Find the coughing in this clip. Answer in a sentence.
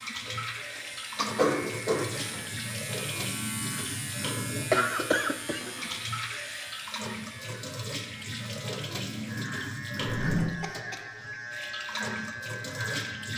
You can hear the coughing from 0.2 to 2.1 s, from 4.7 to 5.7 s and from 10.6 to 11.3 s.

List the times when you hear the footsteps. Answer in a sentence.
The footsteps can't be heard in this clip.